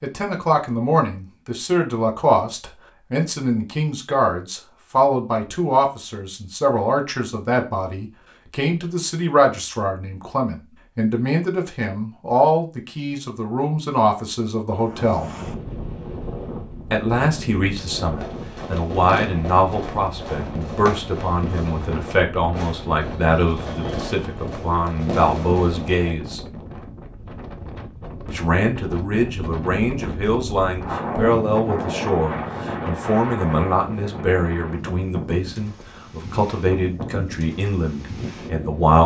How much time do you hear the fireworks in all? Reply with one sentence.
The fireworks can be heard for 8 seconds in total.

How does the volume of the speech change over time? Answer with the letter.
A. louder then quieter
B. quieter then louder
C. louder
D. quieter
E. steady
E.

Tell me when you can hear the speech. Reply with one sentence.
The speech can be heard from 0.0 to 15.3 s, from 16.9 to 26.4 s and from 28.2 to 39.0 s.